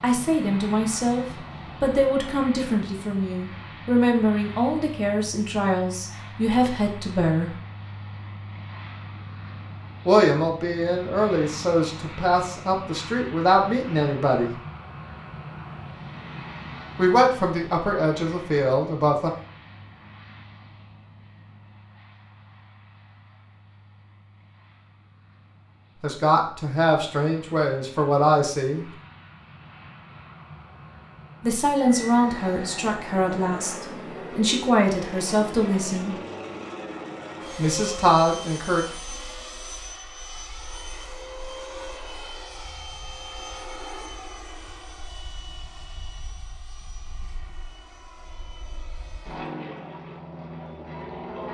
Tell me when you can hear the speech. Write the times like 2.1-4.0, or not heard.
0.0-7.5, 10.1-14.5, 16.9-19.3, 26.0-28.9, 31.4-36.1, 37.5-38.9.